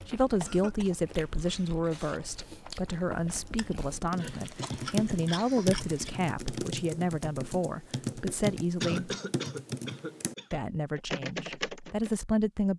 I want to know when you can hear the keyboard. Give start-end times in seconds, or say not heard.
3.8-12.2.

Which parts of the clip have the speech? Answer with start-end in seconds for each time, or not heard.
0.1-9.1, 10.5-12.7.